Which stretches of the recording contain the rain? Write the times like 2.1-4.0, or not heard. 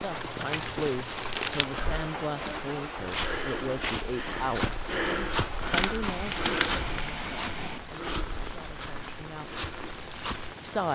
0.0-10.9.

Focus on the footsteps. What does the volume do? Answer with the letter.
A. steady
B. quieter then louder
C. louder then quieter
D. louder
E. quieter
C.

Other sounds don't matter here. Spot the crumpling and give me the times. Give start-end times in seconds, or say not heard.
0.1-1.8, 5.7-6.8.